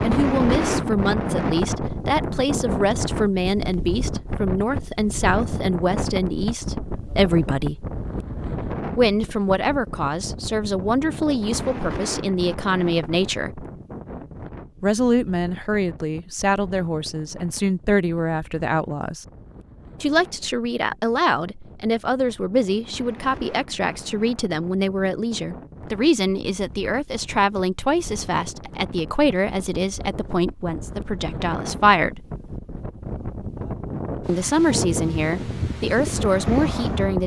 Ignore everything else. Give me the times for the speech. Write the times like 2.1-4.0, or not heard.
0.0-7.8, 8.9-13.7, 14.8-19.2, 20.0-32.2, 34.2-37.2.